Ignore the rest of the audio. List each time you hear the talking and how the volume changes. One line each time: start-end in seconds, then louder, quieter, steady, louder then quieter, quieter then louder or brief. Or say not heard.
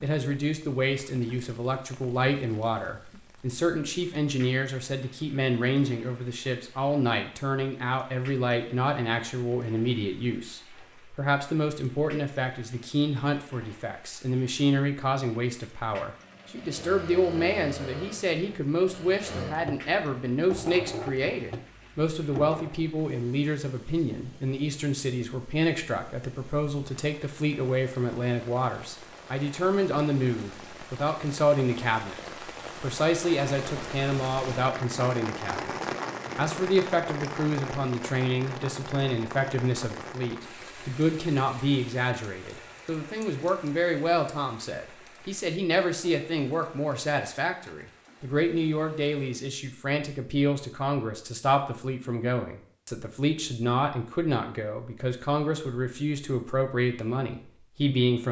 0.0-32.1 steady
32.8-35.7 brief
36.4-58.2 steady.